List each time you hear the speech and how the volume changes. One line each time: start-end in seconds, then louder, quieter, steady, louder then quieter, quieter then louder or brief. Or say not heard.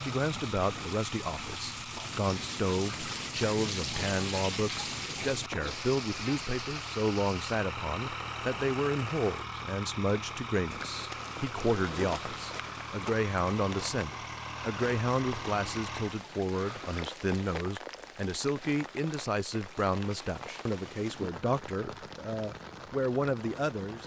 0.0-24.0 steady.